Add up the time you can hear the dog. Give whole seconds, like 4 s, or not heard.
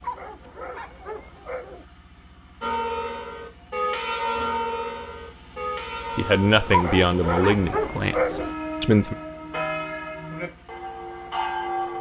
4 s.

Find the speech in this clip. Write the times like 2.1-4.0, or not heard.
6.2-9.2.